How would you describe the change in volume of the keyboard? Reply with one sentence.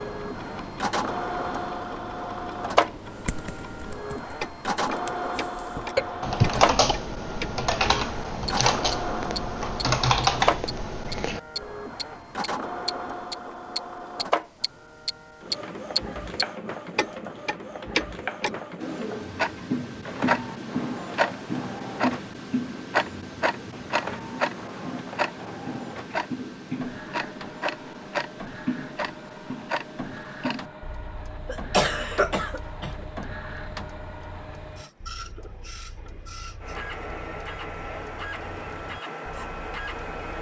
The volume of the keyboard goes up.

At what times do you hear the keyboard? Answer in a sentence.
The keyboard can be heard from 3.0 to 11.4 s.